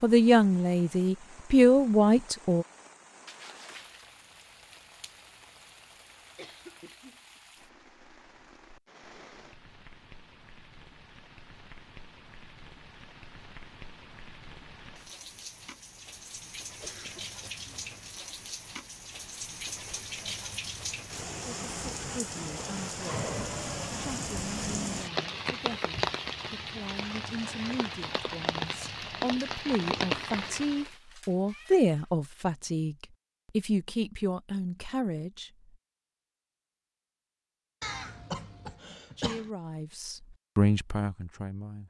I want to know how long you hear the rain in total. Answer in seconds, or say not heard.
31 s.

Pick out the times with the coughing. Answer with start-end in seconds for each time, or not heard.
6.3-7.4, 16.8-17.7, 37.8-39.5.